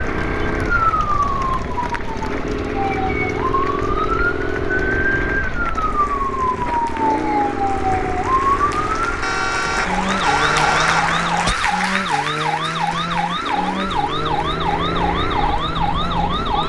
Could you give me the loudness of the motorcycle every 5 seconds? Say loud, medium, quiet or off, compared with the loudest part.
loud, loud, medium, loud.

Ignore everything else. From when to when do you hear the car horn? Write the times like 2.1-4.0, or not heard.
9.2-11.7.